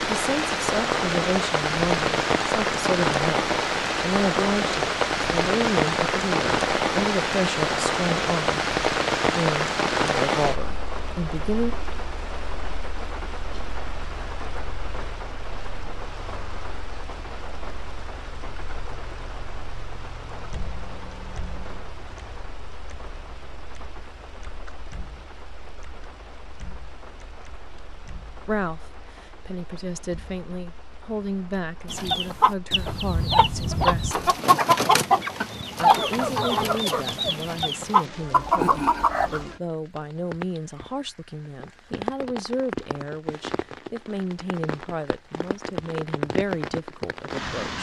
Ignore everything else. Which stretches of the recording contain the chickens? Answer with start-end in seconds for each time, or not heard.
31.9-39.5.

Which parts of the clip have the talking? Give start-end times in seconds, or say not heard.
0.0-11.8, 28.4-34.2, 35.8-47.7.